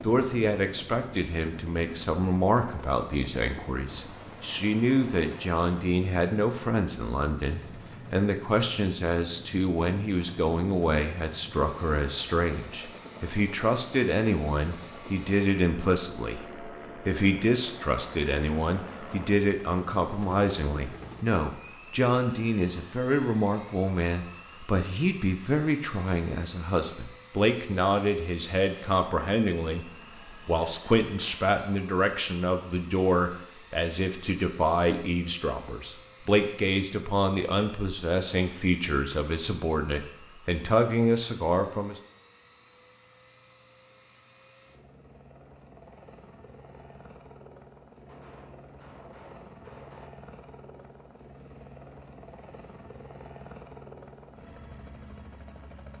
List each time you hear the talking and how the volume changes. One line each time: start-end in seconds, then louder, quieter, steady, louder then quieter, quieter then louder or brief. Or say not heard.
0.0-42.0 steady.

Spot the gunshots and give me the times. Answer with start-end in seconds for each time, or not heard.
48.0-50.1.